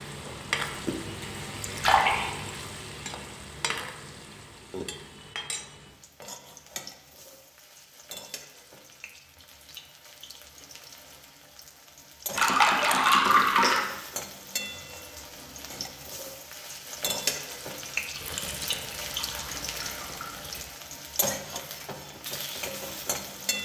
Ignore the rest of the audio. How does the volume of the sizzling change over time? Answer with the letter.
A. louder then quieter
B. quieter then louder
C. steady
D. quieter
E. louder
B.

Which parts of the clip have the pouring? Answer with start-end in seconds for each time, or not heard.
1.6-2.5, 12.3-13.8, 18.1-20.6.